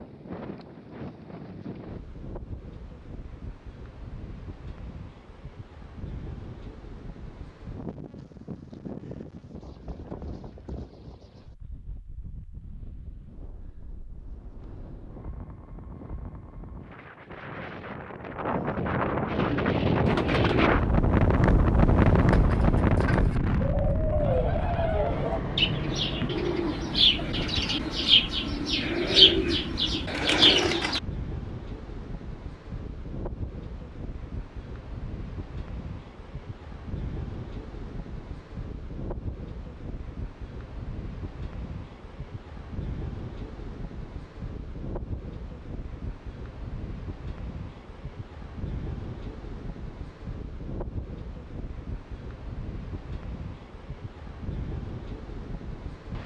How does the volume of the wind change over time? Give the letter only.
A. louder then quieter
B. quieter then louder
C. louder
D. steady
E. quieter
A.